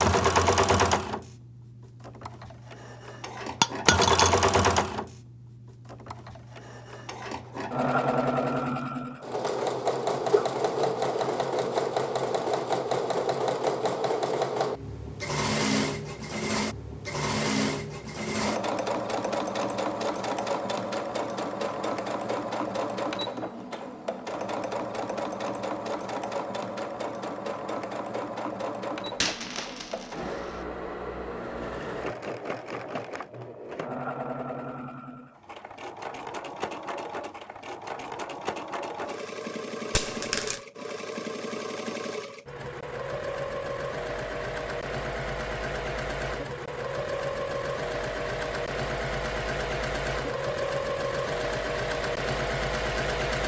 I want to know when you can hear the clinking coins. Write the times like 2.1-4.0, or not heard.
3.6-4.3, 29.1-30.6, 40.0-40.6.